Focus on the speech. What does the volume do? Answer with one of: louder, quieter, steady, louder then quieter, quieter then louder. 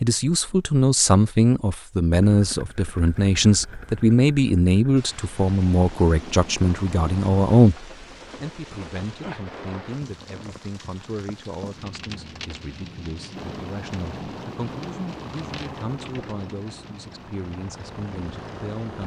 quieter.